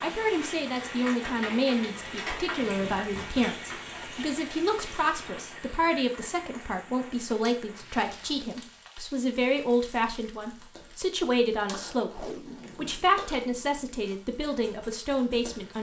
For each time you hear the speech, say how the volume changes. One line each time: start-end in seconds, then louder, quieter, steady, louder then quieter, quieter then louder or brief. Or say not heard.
0.0-15.7 steady.